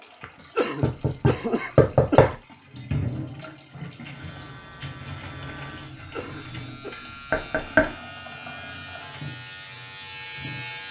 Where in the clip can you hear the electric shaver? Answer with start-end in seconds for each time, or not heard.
4.0-10.8.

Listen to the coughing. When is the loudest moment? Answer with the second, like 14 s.
1 s.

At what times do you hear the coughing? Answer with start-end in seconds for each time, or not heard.
0.6-2.4, 6.1-7.0.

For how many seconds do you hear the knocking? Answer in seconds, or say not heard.
2 s.